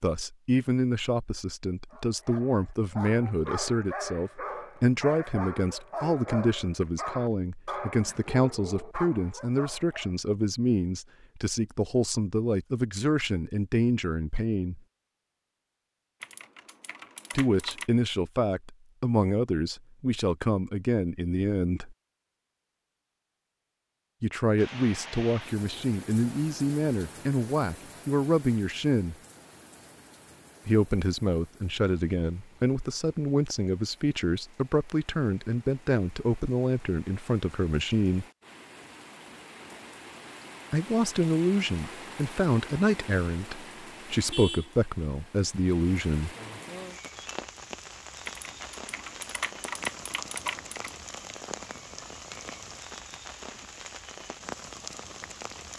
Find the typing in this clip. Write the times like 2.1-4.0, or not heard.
16.2-17.9, 48.2-51.0.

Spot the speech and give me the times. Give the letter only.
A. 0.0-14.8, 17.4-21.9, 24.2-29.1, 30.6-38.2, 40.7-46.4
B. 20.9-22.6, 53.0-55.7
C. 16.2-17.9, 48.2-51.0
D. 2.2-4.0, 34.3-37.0
A.